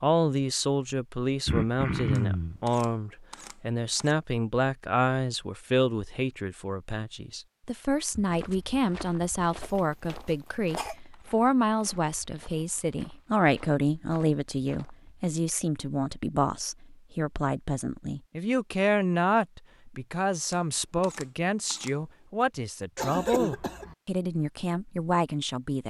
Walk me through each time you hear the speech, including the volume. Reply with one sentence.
You can hear the speech from 0.0 to 25.8 s, at a steady volume.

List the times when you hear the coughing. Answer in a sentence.
The coughing can be heard from 1.4 to 2.6 s, from 9.6 to 10.9 s and from 22.9 to 23.9 s.